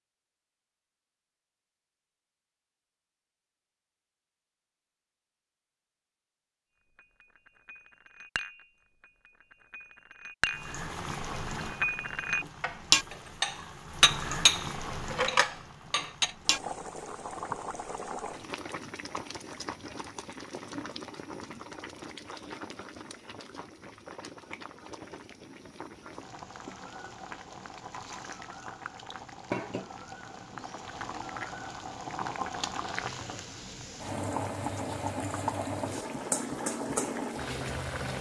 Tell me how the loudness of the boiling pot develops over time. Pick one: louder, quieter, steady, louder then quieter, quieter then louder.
quieter then louder.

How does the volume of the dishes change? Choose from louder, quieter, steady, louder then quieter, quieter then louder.
quieter then louder.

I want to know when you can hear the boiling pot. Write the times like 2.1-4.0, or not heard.
10.5-38.1.